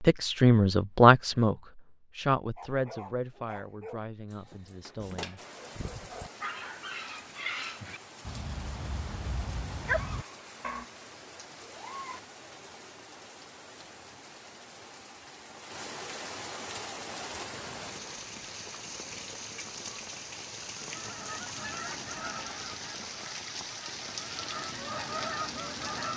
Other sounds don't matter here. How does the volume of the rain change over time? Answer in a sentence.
The volume of the rain goes up.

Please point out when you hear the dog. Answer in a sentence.
You can hear the dog from 2.5 to 10.8 s.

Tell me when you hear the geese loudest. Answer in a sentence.
The volume of the geese peaks at 25 seconds.